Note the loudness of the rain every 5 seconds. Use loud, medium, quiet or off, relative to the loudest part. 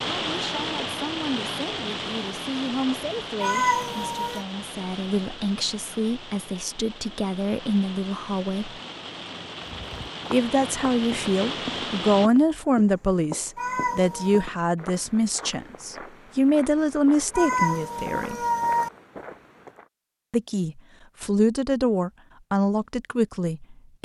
loud, medium, loud, off, off.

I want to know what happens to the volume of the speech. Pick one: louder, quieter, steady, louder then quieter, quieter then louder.
louder.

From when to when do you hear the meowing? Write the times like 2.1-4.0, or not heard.
3.4-4.5, 13.6-14.4, 17.3-18.9.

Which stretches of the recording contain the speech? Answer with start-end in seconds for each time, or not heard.
0.1-8.7, 10.3-18.4, 20.3-24.0.